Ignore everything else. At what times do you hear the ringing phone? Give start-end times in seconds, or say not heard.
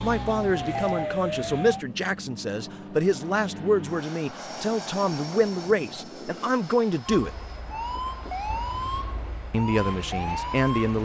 0.5-1.1, 8.4-9.5.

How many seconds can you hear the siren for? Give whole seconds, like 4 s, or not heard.
6 s.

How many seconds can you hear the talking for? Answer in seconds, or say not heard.
9 s.